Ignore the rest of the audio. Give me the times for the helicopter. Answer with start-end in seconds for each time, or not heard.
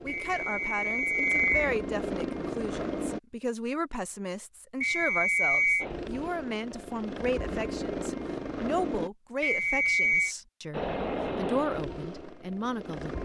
0.0-3.2, 5.8-9.1, 10.7-13.2.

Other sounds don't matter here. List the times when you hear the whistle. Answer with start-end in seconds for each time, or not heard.
0.1-1.7, 4.8-5.8, 9.4-10.3.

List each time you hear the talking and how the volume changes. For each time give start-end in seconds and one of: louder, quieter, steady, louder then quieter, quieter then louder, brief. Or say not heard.
0.0-13.2 steady.